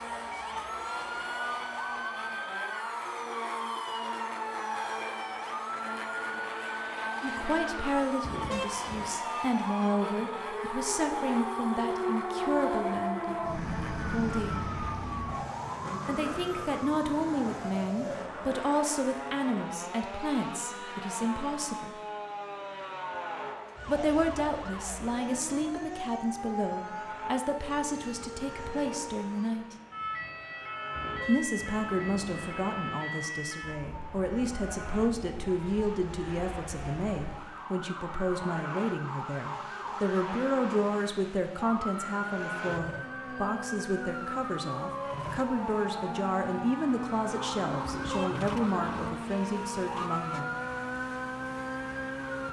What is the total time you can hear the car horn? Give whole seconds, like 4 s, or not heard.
4 s.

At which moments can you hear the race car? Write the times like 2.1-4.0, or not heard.
0.0-52.4.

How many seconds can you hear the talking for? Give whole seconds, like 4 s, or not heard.
38 s.